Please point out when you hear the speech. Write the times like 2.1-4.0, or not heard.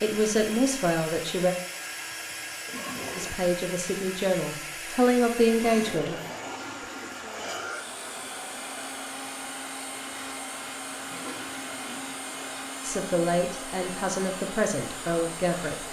0.0-1.6, 3.1-6.2, 12.8-15.8.